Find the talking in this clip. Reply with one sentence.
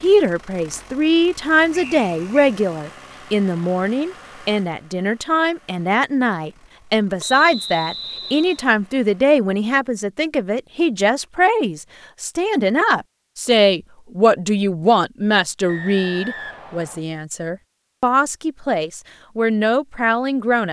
The talking can be heard from 0.0 to 20.6 s.